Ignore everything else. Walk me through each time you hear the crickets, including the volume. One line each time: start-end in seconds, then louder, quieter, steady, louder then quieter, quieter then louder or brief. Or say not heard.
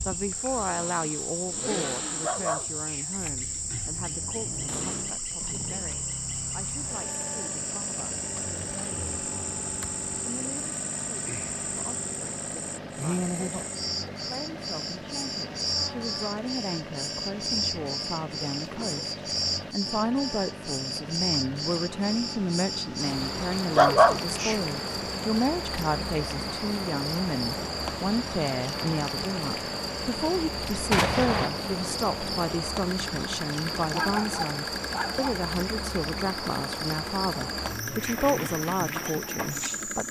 0.0-40.0 steady.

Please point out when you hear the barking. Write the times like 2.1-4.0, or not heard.
2.2-3.0, 23.7-24.6, 33.9-35.5.